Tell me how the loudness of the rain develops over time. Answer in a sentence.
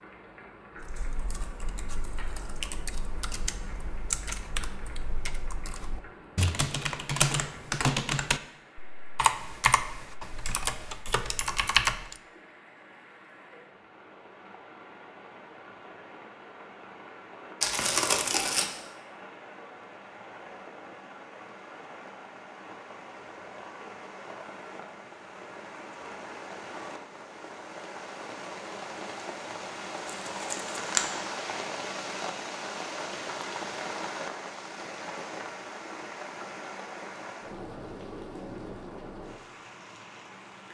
The loudness of the rain goes up.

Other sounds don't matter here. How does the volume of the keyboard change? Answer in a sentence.
The volume of the keyboard goes up.